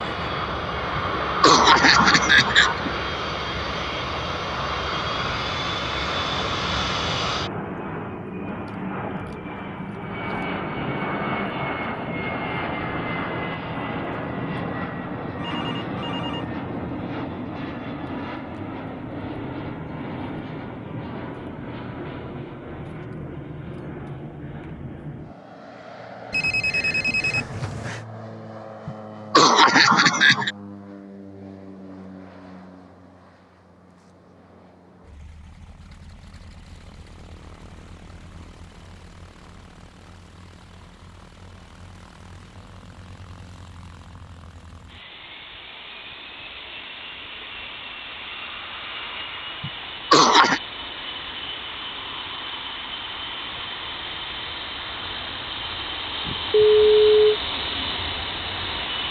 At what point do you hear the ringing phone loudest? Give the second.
57 s.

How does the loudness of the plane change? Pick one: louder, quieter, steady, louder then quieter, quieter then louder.
quieter then louder.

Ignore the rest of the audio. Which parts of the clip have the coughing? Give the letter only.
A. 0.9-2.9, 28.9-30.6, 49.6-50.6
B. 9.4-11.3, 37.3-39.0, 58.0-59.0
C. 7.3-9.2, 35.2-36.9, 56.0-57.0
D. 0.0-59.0
A.